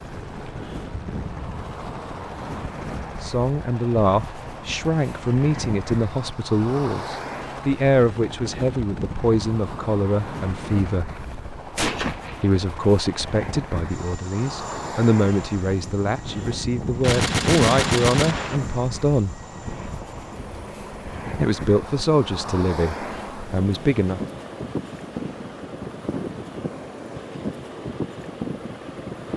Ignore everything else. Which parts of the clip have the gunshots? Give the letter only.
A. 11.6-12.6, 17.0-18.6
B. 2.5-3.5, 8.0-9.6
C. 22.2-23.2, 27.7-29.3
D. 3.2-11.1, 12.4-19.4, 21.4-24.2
A.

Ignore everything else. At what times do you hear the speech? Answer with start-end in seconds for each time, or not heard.
3.2-11.1, 12.4-19.4, 21.4-24.2.